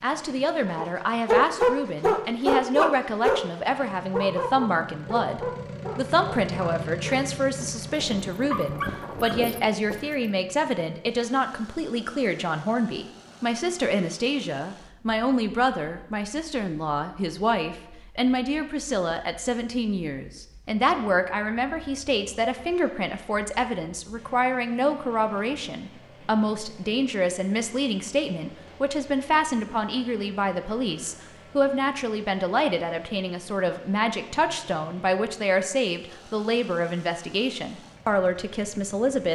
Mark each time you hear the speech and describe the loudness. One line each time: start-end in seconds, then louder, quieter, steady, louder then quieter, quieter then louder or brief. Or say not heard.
0.0-39.3 steady.